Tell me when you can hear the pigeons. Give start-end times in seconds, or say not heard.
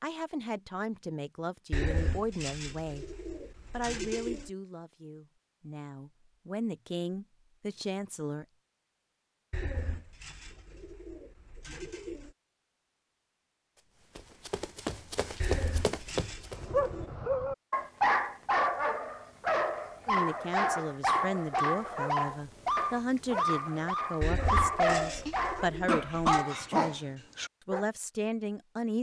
1.7-4.5, 9.5-12.3, 15.4-17.1, 24.2-26.4.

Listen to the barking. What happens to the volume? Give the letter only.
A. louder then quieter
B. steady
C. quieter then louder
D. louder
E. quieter
B.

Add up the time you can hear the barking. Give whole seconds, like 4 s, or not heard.
11 s.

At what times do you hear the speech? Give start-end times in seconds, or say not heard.
0.0-3.0, 3.7-8.4, 20.1-28.9.